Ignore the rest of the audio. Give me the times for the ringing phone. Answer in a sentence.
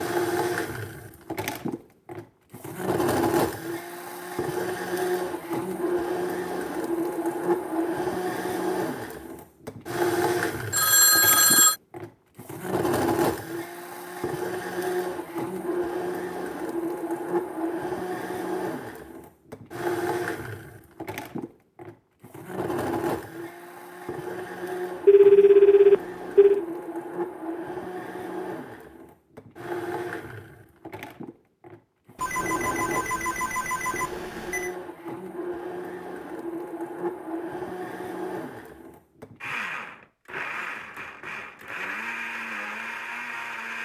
The ringing phone can be heard from 10.7 to 11.8 s, from 25.1 to 26.6 s and from 32.1 to 34.8 s.